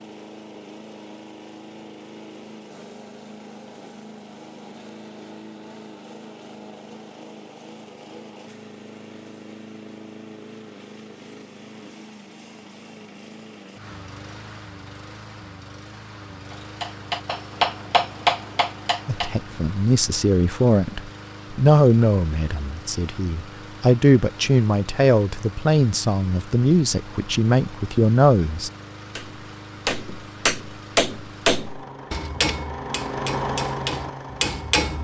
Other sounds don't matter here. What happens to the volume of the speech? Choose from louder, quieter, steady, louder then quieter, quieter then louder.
steady.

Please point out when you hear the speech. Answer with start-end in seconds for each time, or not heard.
19.1-28.7.